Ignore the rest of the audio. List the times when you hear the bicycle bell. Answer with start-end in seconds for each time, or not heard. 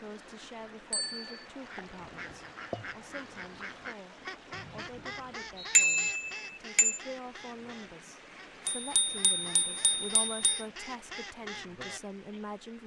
0.9-1.4, 5.8-7.0, 8.7-10.7.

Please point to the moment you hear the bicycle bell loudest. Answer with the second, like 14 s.
6 s.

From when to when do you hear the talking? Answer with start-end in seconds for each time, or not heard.
0.0-12.8.